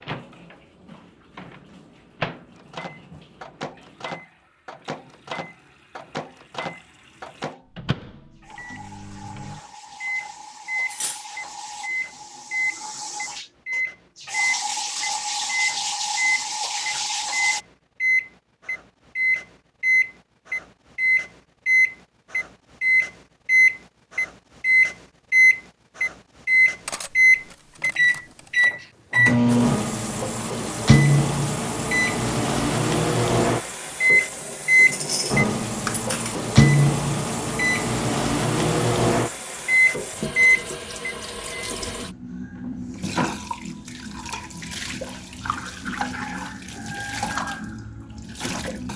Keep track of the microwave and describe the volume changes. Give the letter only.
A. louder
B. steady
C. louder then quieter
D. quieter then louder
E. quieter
A.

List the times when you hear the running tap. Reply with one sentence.
You can hear the running tap from 0.0 to 17.6 s and from 29.4 to 48.9 s.